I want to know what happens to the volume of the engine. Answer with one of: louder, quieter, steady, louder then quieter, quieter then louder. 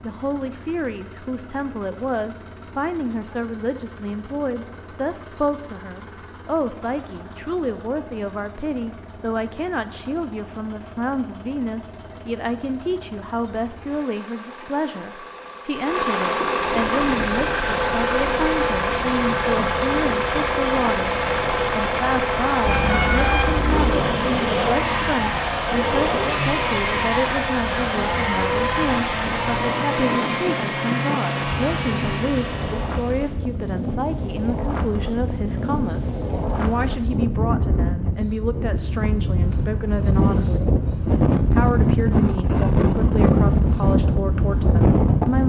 louder.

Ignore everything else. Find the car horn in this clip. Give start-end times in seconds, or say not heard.
22.6-24.0.